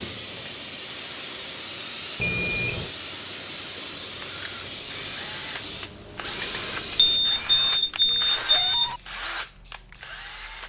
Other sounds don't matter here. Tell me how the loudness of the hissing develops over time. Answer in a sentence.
The loudness of the hissing goes down.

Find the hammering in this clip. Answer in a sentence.
The hammering can't be heard in this clip.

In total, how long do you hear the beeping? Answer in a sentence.
The beeping can be heard for 3 seconds in total.